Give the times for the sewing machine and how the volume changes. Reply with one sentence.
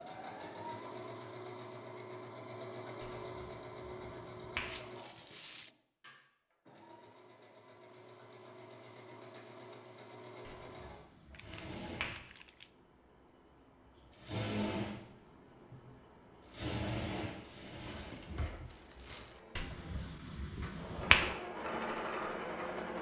The sewing machine can be heard from 0.0 to 22.9 s, getting quieter then louder.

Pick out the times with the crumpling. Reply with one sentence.
You can hear the crumpling from 4.7 to 5.8 s, from 11.3 to 12.7 s and from 17.8 to 19.4 s.